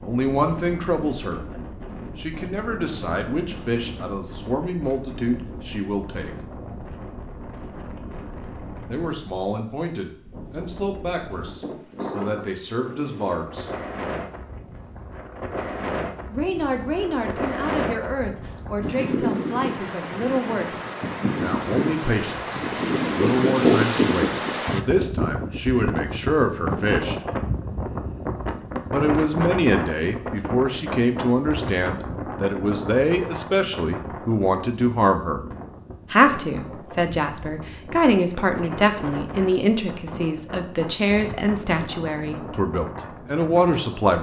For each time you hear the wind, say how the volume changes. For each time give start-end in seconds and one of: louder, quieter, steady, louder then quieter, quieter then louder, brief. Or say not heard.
0.0-44.1 louder then quieter.